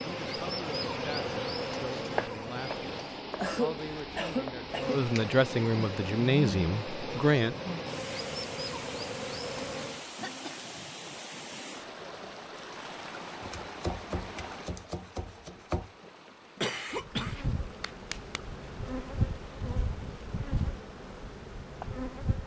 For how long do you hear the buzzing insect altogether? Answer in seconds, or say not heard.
14 s.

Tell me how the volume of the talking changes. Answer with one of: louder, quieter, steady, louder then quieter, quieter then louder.
louder.